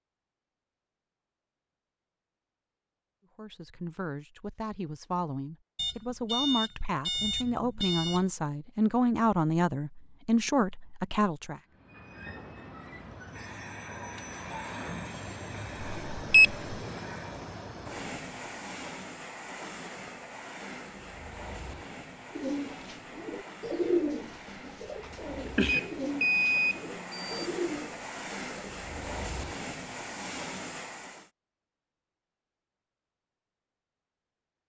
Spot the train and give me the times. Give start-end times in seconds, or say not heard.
11.7-31.3.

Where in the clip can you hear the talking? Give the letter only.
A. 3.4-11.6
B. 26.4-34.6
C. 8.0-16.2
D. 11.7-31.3
A.